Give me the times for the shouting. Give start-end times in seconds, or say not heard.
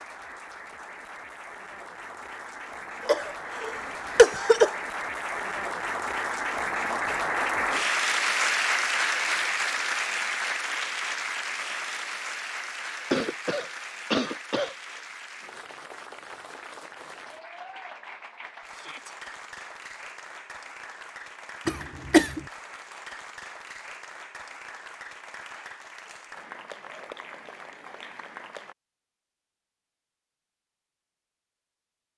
18.7-19.1.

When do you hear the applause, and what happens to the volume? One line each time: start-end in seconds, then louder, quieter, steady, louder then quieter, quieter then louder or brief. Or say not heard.
0.0-28.8 louder then quieter.